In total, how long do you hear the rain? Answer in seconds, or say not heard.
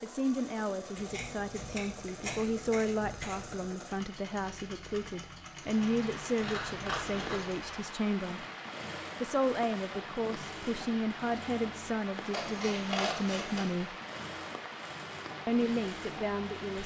11 s.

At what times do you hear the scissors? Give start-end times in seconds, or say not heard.
0.9-3.7, 6.4-7.5, 12.3-13.7.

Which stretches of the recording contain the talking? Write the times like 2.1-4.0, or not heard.
0.0-8.4, 9.2-13.9, 15.4-16.8.